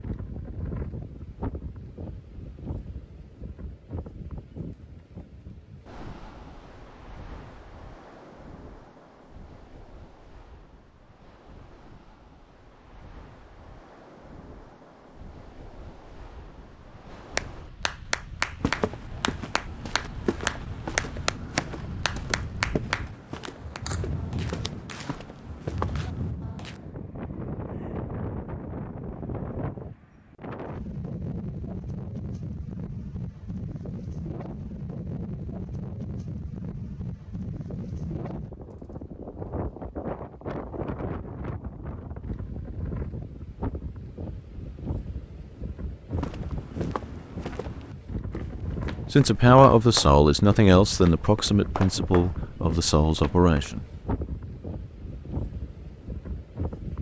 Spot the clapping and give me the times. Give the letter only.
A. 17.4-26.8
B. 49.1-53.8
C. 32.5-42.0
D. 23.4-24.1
A.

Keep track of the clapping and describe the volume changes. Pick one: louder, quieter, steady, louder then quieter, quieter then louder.
quieter.